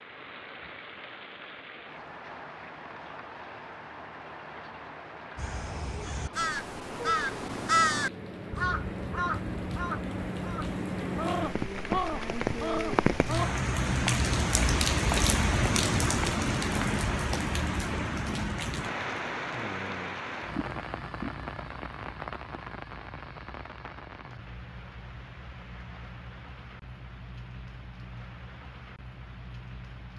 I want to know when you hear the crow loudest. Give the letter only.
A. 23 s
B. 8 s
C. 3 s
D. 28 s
B.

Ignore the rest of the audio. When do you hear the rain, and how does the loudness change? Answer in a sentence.
The rain can be heard from 0.0 to 30.1 s, getting louder then quieter.